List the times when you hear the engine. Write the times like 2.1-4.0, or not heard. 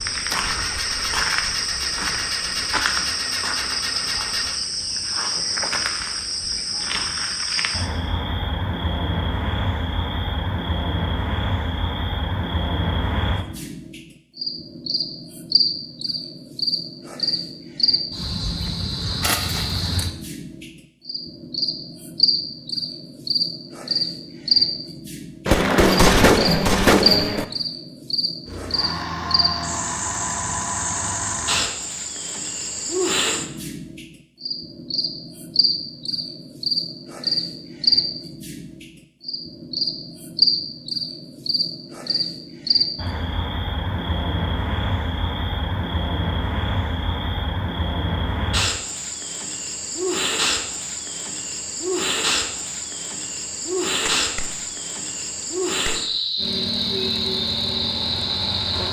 0.1-4.6, 28.4-31.7, 56.4-58.8.